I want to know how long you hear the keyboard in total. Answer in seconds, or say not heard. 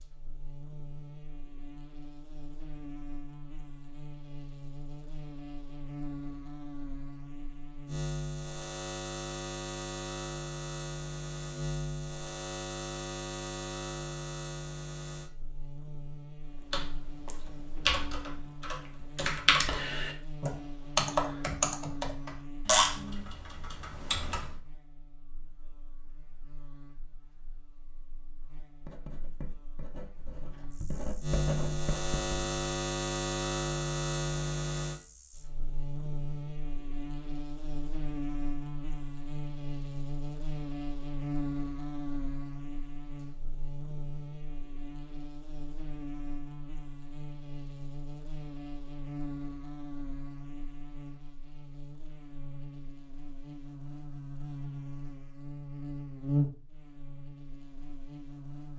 8 s.